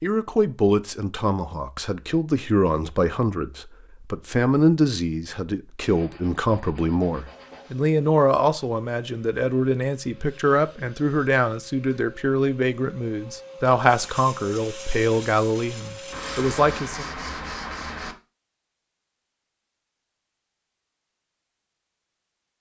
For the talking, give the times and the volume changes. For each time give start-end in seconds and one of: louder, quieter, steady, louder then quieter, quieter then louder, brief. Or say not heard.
0.0-17.1 steady.